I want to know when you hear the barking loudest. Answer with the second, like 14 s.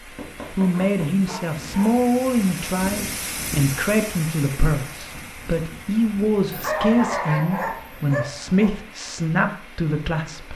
7 s.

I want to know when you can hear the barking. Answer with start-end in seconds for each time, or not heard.
0.1-1.9, 6.5-8.7.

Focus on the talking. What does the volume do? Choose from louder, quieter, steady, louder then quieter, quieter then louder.
steady.